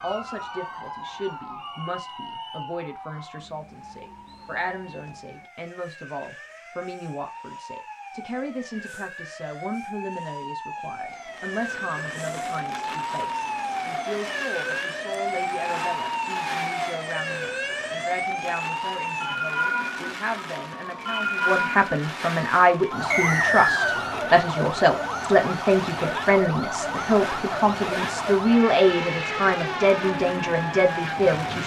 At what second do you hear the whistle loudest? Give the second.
24 s.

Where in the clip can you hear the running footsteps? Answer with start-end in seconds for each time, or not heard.
not heard.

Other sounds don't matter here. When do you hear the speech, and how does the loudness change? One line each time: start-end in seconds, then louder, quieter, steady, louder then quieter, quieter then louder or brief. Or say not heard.
0.0-31.6 louder.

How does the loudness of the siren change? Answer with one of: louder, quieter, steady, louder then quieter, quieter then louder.
louder.